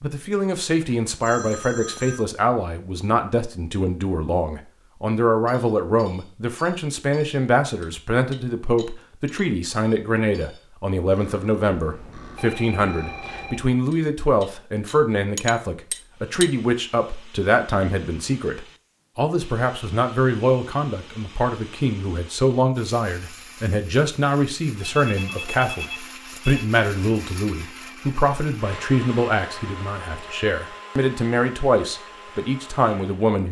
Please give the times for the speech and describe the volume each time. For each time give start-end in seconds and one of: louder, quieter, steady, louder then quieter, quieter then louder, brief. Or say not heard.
0.0-33.4 steady.